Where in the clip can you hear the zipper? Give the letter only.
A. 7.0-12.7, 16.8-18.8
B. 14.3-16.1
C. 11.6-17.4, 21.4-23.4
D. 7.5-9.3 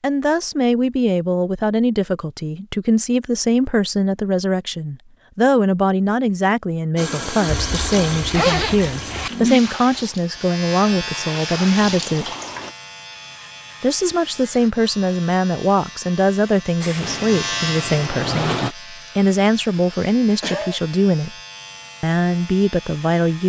D.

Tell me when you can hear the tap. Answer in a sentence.
The tap can be heard from 7.0 to 12.7 s and from 16.8 to 18.8 s.